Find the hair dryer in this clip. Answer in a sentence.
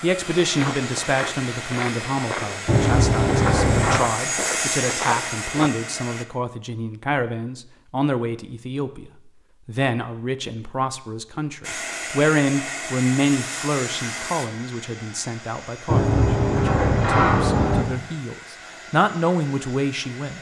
The hair dryer can be heard from 0.0 to 6.2 s and from 11.6 to 20.3 s.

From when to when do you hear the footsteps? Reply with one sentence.
The footsteps can be heard from 0.2 to 5.7 s.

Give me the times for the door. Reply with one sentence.
The door can be heard from 2.6 to 4.0 s and from 15.8 to 17.9 s.